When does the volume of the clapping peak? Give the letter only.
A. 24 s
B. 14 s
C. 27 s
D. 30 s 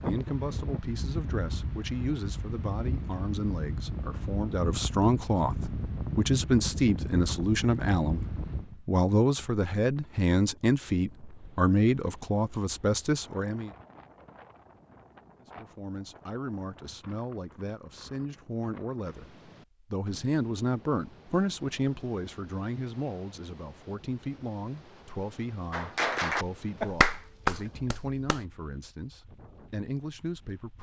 C.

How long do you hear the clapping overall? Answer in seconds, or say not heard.
3 s.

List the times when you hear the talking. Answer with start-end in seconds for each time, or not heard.
0.0-13.7, 15.6-30.7.